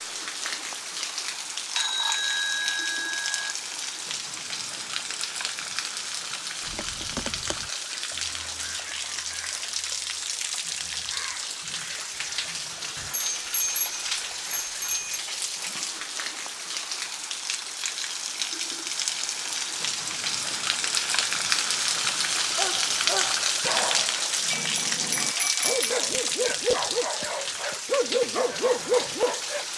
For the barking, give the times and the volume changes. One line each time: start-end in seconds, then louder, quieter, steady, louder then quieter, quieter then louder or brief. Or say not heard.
22.5-29.6 quieter then louder.